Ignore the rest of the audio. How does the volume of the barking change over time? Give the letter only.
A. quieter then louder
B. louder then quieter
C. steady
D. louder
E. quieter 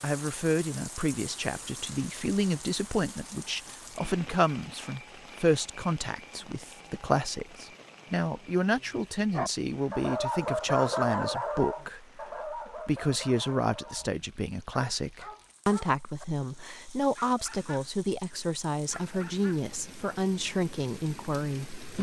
E.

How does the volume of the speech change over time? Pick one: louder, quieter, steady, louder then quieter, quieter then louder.
steady.